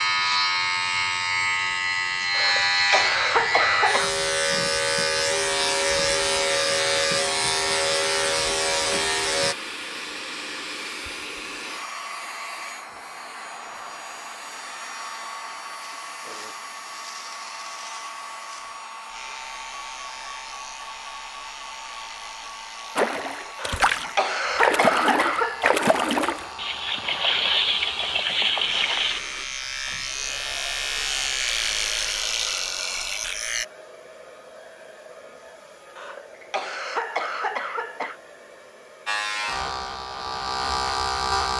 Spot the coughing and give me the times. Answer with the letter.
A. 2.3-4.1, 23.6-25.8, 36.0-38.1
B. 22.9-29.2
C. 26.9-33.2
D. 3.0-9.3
A.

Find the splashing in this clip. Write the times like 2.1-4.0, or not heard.
22.9-29.2.